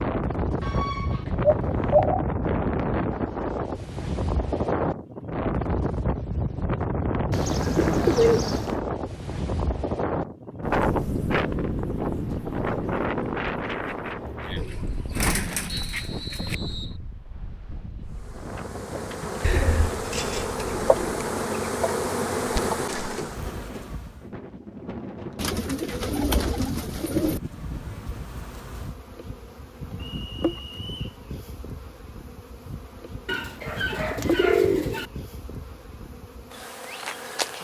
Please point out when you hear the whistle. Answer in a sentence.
You can hear the whistle from 15.7 to 16.9 s and from 30.1 to 31.2 s.